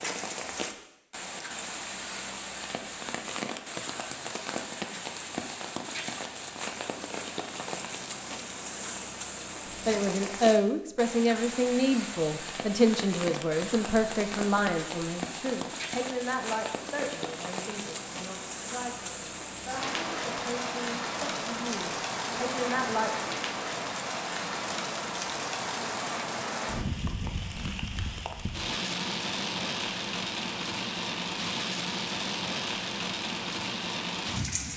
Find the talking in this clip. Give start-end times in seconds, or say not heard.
9.8-23.1.